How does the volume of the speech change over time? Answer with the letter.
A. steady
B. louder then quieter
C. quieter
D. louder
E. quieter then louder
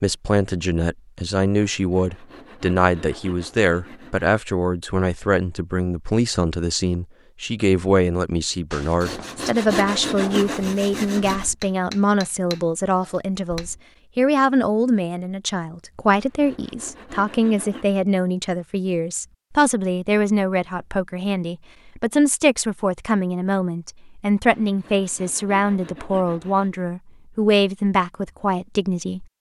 A.